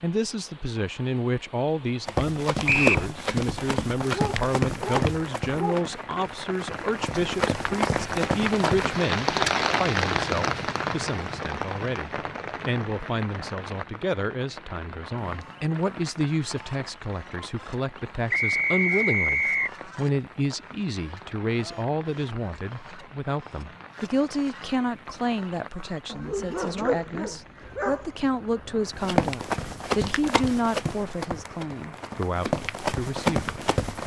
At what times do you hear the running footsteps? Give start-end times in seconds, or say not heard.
2.0-9.1, 28.9-34.0.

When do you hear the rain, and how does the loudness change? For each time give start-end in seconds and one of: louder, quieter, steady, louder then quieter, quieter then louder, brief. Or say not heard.
0.0-34.0 louder then quieter.